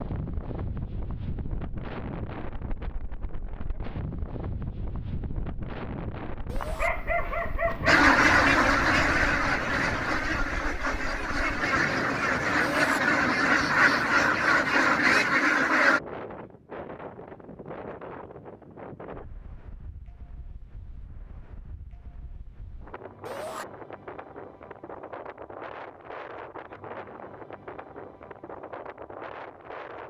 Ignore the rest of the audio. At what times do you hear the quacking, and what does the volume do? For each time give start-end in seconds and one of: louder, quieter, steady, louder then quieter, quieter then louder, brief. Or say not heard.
7.8-16.0 quieter then louder.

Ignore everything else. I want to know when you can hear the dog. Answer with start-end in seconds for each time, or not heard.
6.5-8.1.